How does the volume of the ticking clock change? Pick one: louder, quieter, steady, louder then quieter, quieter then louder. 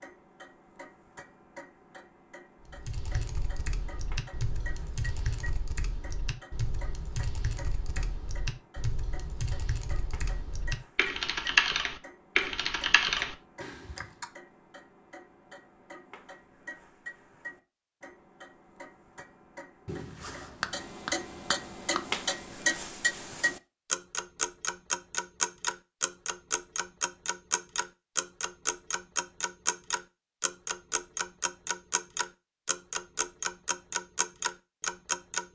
louder.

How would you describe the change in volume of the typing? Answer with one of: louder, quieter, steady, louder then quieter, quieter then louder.
louder.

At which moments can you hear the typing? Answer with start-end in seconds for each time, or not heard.
2.6-14.2.